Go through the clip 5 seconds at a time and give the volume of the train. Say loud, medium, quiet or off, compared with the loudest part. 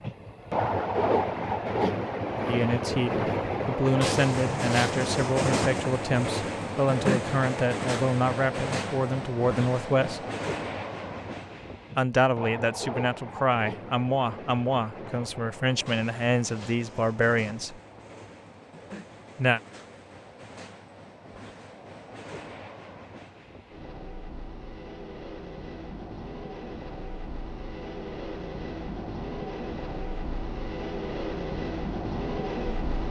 loud, loud, medium, quiet, quiet, medium, medium.